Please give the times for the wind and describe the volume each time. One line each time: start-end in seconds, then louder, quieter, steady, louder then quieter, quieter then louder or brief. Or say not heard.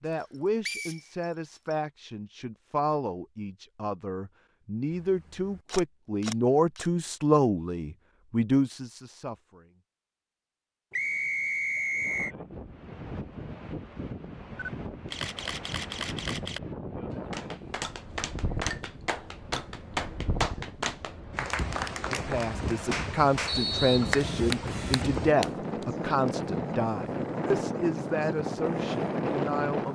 11.9-29.9 louder.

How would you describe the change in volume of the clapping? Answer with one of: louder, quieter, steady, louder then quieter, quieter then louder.
louder.